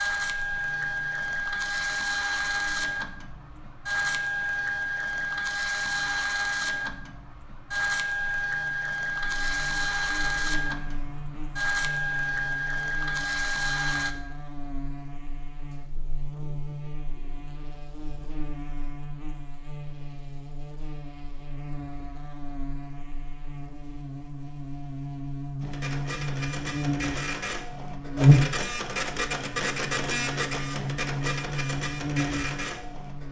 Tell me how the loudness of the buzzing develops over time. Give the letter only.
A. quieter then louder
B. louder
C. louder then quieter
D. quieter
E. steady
B.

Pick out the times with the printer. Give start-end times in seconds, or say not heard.
0.0-14.2, 25.6-33.2.